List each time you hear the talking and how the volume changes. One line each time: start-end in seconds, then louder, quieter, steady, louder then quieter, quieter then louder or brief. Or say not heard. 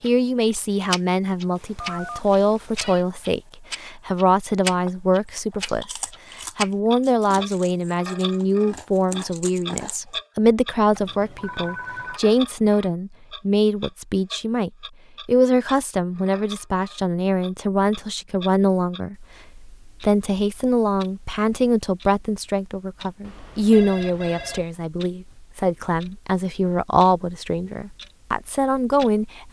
0.0-29.4 steady.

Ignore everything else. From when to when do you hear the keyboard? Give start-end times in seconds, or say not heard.
not heard.